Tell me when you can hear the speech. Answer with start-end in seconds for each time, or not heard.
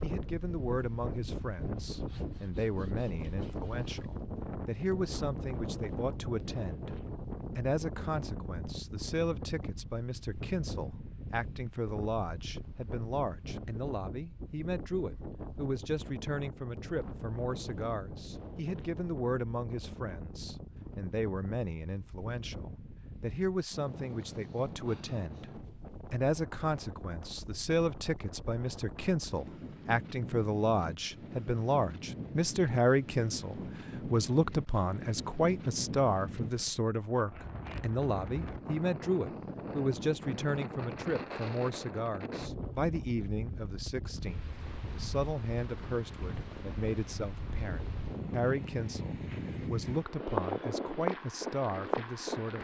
0.0-7.0, 7.5-25.5, 26.1-52.6.